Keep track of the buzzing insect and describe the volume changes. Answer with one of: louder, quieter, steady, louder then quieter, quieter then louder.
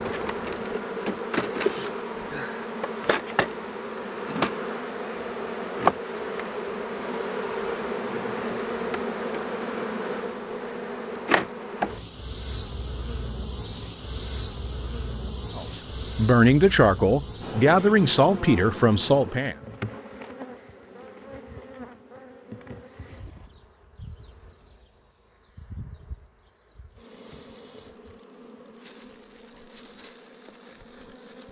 quieter.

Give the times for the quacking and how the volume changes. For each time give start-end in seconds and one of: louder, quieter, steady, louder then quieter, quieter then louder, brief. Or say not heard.
not heard.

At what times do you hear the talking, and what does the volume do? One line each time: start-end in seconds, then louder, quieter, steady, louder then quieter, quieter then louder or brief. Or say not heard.
15.6-19.6 steady.